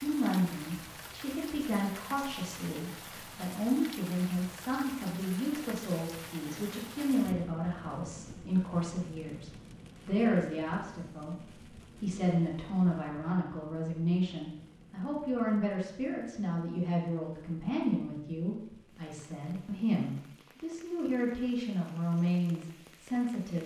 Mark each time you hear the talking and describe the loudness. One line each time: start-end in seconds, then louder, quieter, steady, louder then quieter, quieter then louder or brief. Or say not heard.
0.0-23.6 steady.